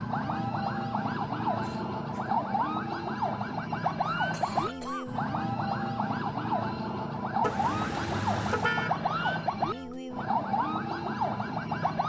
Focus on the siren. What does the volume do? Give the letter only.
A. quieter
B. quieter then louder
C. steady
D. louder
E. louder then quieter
C.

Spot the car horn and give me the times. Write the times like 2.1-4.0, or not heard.
7.4-8.9.